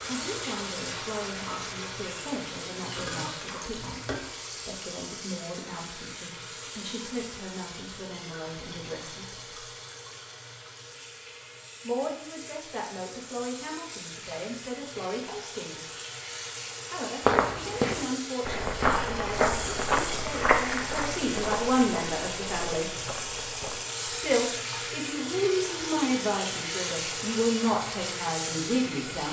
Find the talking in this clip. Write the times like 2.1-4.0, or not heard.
0.1-9.6, 11.8-15.8, 16.9-22.9, 24.2-29.2.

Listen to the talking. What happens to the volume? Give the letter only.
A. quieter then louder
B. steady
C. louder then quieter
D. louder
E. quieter
D.